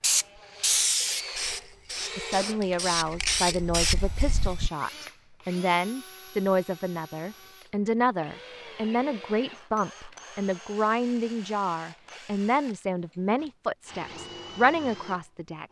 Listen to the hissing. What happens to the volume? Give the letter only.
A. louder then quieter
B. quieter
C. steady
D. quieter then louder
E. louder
D.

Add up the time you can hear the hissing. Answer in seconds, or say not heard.
5 s.